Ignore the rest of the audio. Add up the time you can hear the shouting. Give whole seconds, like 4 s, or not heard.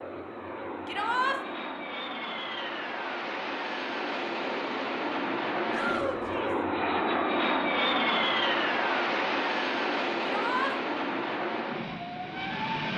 2 s.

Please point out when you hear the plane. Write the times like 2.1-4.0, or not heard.
0.0-12.9.